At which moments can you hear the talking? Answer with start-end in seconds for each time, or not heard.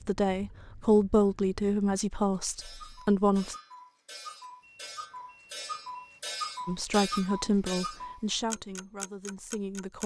0.1-3.5, 6.7-10.0.